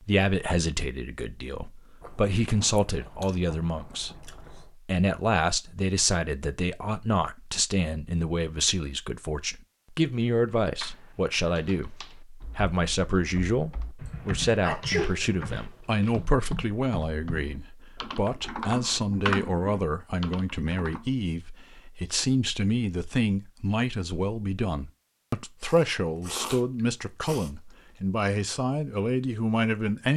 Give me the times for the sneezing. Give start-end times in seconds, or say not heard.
14.1-15.2.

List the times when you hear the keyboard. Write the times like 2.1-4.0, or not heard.
10.8-21.1.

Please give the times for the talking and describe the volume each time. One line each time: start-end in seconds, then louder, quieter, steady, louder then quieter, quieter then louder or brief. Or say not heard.
0.1-30.1 steady.